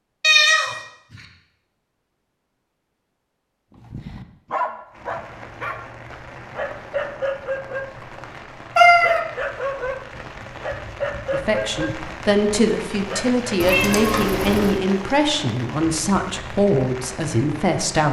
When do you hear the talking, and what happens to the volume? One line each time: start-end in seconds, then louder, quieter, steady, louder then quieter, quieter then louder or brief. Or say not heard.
11.3-18.0 steady.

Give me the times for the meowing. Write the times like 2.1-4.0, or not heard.
0.2-0.8, 8.8-9.2, 13.6-14.8.